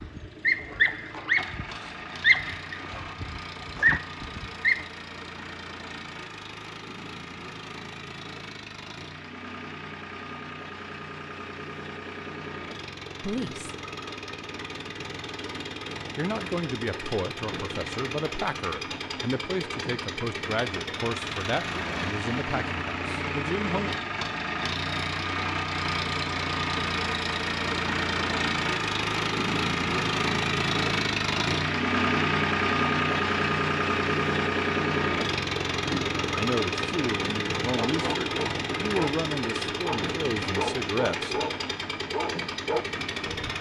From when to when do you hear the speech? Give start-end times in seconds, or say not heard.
13.2-13.7, 16.1-23.9, 36.4-41.4.